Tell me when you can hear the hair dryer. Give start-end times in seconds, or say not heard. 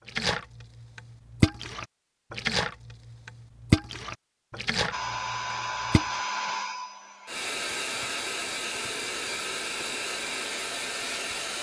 4.9-11.5.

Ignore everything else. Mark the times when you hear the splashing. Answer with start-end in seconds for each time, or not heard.
0.1-6.2.